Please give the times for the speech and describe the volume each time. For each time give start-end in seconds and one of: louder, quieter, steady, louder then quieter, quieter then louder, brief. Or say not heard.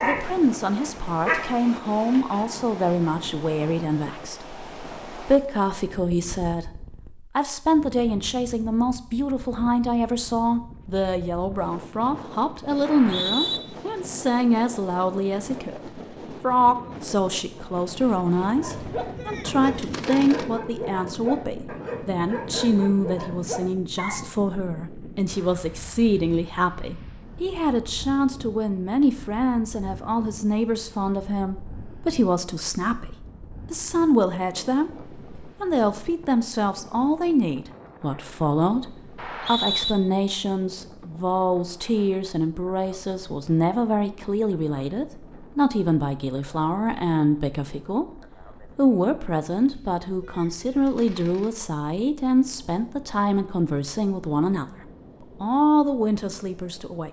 0.0-54.6 steady
55.4-57.0 brief.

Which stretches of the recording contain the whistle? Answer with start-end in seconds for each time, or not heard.
12.8-13.6, 39.1-40.0.